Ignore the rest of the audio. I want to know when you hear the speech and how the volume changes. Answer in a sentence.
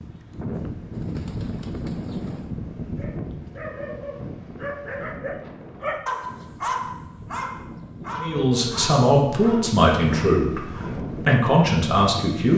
The speech can be heard from 8.2 to 12.5 s, at a steady volume.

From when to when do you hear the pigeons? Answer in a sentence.
You can hear the pigeons from 0.9 to 2.5 s.